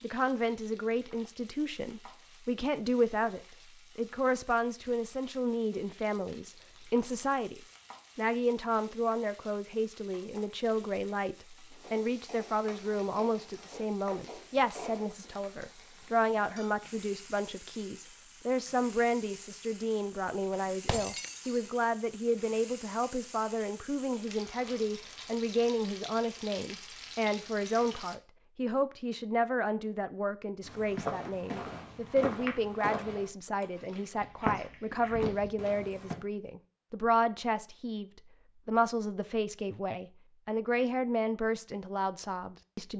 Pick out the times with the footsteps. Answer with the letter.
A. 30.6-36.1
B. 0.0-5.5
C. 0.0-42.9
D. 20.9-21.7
A.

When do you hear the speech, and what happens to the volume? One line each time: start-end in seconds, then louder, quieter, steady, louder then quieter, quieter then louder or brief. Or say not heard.
0.0-42.9 steady.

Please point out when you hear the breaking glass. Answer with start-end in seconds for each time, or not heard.
20.9-21.7.